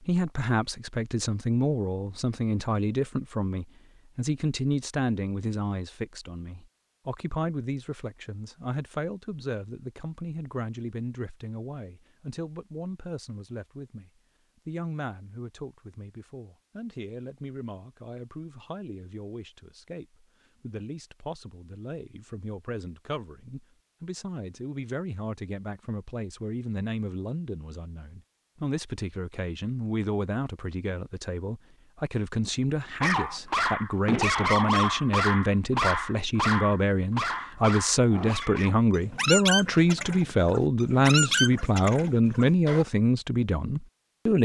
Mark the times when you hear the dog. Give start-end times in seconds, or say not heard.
33.0-42.9.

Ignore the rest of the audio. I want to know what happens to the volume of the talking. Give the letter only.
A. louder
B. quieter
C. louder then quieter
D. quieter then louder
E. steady
D.